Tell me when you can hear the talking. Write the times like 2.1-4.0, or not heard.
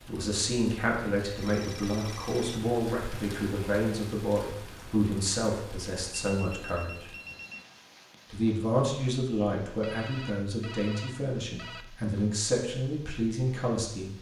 0.1-7.1, 8.3-14.1.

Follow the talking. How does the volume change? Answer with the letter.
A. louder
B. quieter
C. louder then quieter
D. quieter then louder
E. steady
E.